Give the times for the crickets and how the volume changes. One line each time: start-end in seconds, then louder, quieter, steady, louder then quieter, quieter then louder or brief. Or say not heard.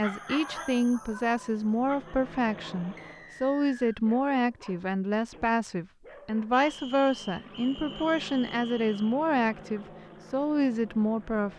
not heard.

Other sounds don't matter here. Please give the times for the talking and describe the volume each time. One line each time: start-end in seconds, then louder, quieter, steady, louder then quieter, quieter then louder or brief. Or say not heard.
0.0-11.5 steady.